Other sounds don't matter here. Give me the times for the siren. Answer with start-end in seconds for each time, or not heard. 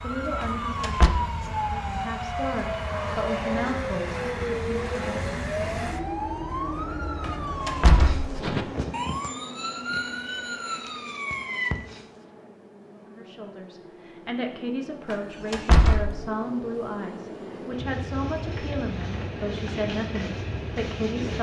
0.0-12.1.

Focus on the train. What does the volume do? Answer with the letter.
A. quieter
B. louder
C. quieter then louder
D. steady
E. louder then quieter
C.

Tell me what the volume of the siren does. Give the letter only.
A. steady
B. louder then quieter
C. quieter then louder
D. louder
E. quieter
A.